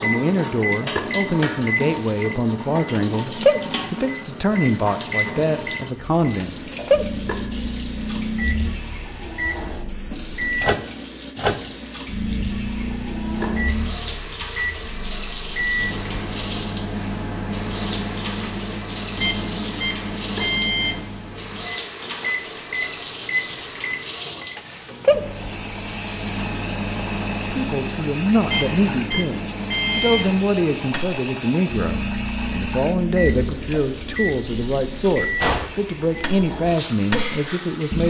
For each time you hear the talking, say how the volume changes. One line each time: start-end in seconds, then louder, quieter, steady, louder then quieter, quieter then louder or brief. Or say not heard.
0.0-6.7 steady
27.5-38.0 steady.